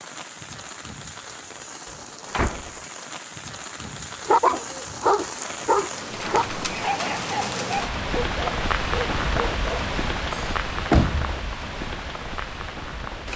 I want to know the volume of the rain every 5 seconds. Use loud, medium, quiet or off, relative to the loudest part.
medium, loud, loud.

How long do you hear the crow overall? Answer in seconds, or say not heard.
not heard.